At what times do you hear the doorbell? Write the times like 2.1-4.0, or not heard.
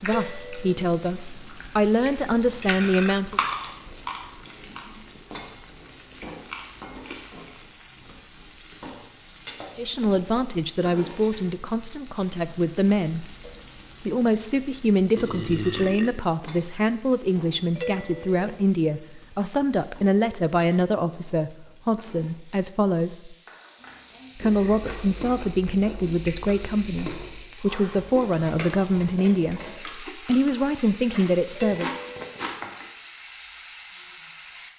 0.1-0.9, 17.8-18.4, 31.6-32.4.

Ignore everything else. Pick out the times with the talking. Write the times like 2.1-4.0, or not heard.
0.0-3.4, 9.8-13.2, 14.0-23.4, 24.4-31.9.